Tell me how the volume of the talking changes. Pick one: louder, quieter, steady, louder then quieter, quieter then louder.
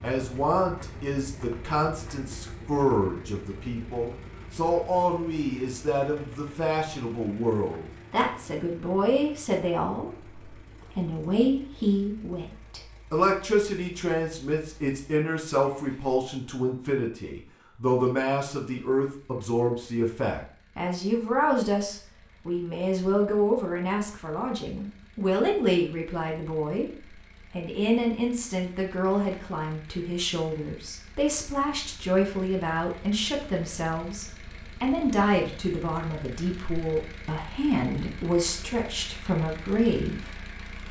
steady.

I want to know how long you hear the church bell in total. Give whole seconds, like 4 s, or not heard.
not heard.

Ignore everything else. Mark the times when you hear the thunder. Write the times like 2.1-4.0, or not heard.
not heard.